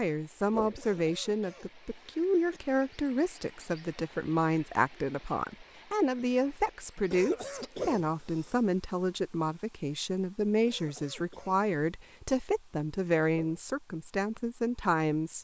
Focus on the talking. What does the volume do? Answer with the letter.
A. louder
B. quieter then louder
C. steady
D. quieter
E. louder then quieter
C.